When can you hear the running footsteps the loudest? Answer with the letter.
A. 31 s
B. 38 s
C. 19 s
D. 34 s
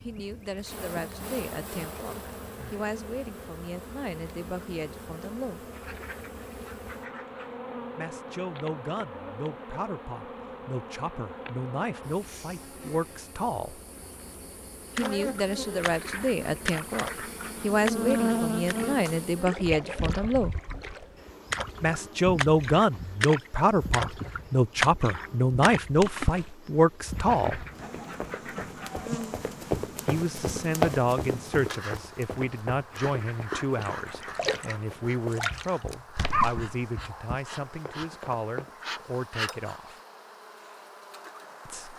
A.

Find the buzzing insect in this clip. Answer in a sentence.
The buzzing insect can be heard from 0.0 to 41.9 s.